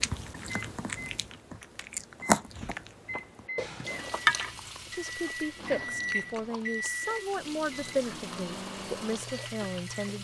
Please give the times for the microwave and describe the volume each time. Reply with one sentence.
You can hear the microwave from 0.1 to 10.1 s, getting louder then quieter.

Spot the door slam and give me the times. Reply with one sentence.
The door slam can't be heard in this clip.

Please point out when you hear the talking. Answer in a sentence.
You can hear the talking from 4.9 to 10.1 s.